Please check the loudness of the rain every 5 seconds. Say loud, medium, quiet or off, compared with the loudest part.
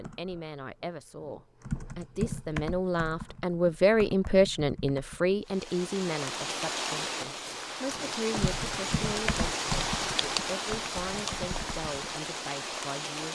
off, loud, loud.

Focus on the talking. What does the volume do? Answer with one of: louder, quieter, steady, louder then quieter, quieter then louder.
louder then quieter.